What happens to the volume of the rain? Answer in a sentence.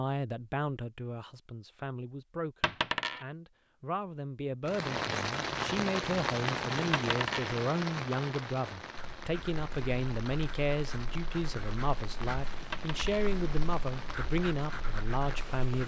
The loudness of the rain goes down.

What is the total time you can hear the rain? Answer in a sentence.
You can hear the rain for 11 seconds altogether.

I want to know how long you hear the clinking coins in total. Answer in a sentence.
You can hear the clinking coins for 2 seconds altogether.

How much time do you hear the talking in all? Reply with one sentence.
You can hear the talking for 16 seconds altogether.